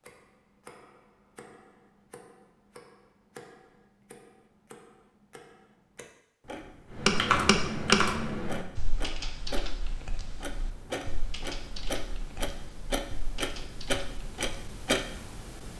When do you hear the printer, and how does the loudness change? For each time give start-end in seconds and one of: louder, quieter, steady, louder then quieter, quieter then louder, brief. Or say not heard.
not heard.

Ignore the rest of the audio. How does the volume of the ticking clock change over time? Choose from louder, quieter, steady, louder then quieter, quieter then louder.
louder.